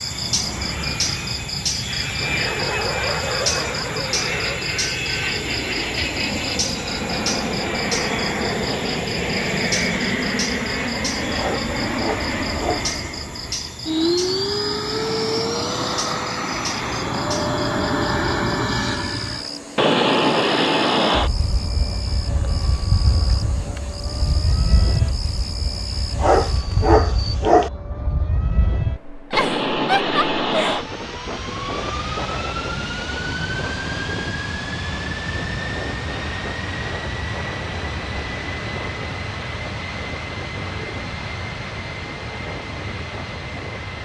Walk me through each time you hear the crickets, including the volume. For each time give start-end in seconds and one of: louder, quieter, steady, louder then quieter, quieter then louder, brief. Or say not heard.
0.0-27.4 quieter.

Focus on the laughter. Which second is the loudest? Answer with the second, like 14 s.
30 s.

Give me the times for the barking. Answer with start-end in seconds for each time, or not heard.
11.3-12.8, 26.1-27.7.